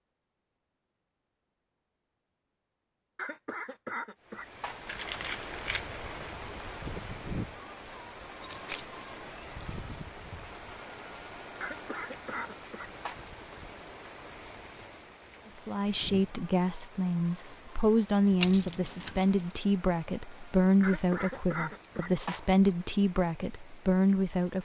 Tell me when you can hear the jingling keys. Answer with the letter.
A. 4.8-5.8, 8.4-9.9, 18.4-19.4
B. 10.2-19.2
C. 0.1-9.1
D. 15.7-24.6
A.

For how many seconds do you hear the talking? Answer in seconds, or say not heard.
9 s.